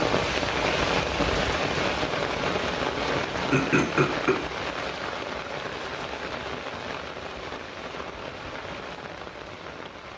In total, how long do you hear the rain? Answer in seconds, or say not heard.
10 s.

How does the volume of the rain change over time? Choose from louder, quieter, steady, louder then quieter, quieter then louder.
quieter.